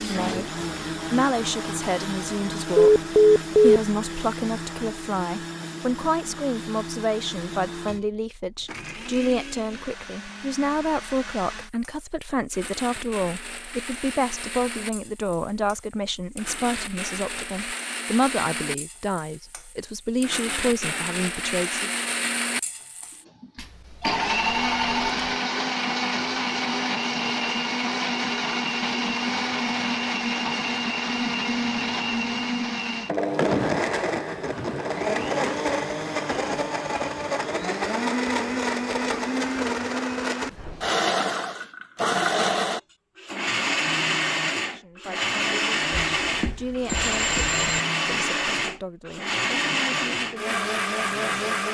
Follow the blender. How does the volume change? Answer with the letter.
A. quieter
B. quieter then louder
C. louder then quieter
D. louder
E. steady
D.